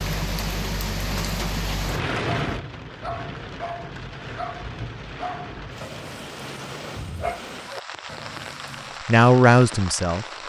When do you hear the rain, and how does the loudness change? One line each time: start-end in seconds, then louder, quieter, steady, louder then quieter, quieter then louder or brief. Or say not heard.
0.0-10.4 quieter.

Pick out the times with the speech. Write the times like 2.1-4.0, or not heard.
9.1-10.2.